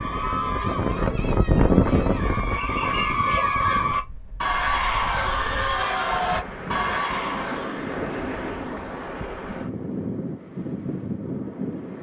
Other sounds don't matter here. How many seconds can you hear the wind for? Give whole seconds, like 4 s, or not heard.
12 s.